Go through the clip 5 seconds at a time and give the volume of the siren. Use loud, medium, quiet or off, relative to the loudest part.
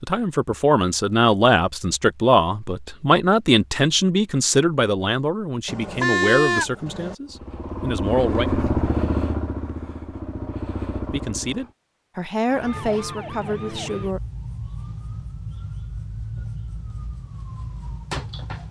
off, off, loud, loud.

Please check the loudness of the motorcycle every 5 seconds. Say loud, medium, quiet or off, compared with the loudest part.
off, loud, medium, off.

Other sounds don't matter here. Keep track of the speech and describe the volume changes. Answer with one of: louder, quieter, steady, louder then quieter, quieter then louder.
quieter.